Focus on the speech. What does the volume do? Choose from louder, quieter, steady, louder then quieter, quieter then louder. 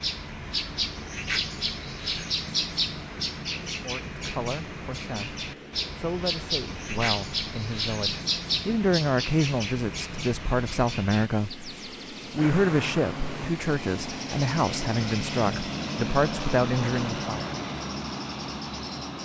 louder.